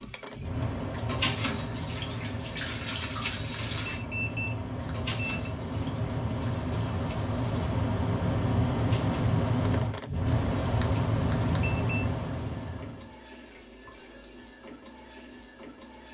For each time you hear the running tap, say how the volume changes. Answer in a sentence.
The running tap can be heard from 0.0 to 16.0 s, getting quieter.